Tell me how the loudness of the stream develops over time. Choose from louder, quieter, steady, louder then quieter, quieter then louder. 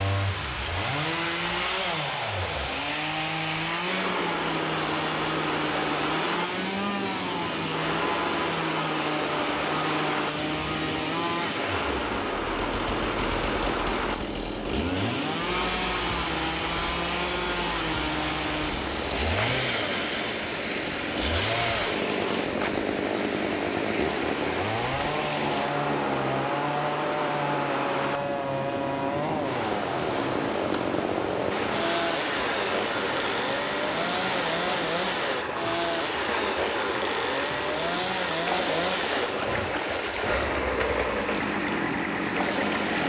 steady.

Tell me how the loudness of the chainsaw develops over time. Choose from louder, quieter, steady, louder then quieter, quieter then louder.
steady.